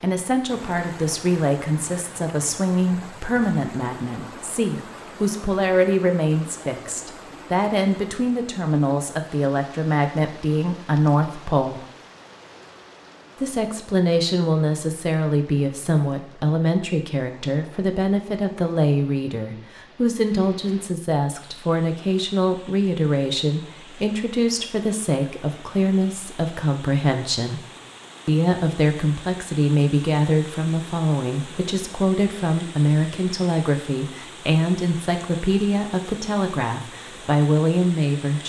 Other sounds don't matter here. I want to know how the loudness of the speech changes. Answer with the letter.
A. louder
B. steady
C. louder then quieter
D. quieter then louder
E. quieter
B.